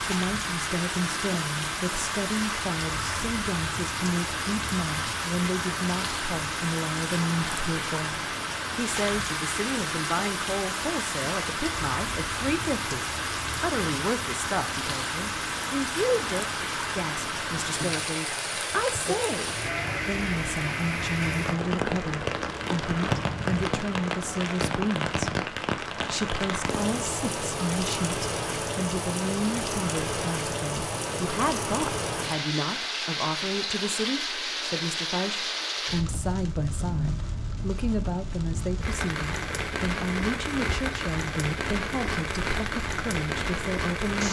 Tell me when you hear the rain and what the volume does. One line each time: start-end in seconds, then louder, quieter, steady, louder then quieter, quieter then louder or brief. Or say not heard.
0.0-44.2 steady.